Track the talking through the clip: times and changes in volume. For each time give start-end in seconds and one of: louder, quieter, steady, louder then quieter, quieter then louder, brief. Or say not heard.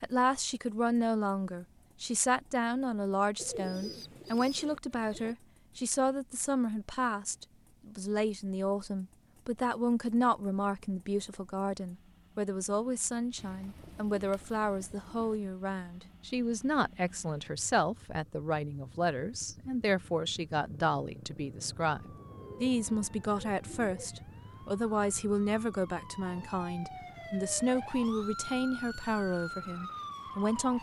0.0-30.7 steady.